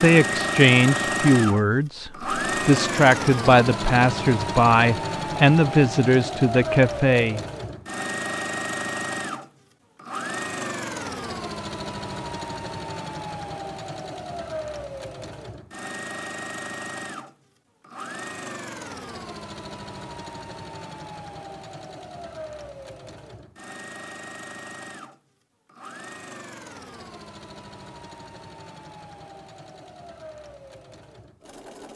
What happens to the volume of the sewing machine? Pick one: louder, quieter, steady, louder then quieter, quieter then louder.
quieter.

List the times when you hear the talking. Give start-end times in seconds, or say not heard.
0.0-7.4.